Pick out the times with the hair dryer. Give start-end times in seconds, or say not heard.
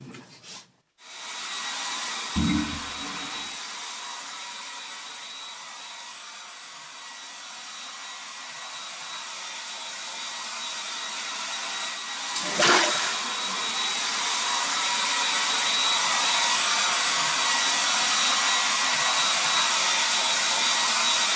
0.0-21.3.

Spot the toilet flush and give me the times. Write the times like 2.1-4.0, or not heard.
2.4-3.5, 12.3-13.2.